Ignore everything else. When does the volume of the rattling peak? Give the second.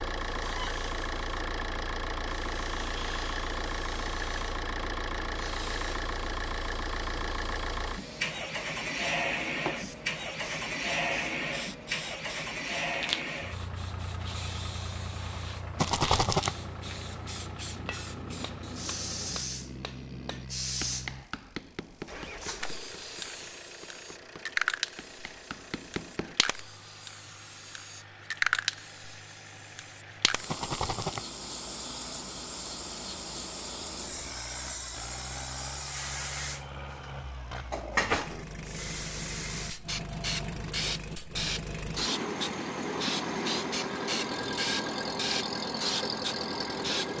16 s.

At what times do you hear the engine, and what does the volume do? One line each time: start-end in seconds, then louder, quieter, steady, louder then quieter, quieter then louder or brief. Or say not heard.
0.0-47.1 quieter then louder.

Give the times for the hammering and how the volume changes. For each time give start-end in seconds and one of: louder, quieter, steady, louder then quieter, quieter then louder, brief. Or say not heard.
17.8-26.4 quieter then louder.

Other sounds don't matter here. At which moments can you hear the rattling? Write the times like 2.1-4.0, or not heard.
15.8-16.6, 30.4-31.2.